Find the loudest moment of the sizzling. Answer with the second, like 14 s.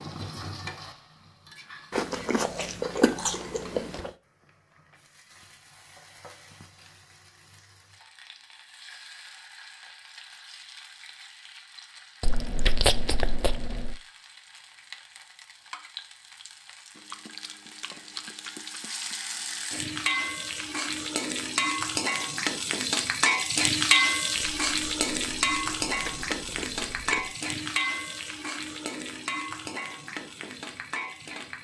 24 s.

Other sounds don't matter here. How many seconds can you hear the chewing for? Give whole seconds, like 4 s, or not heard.
9 s.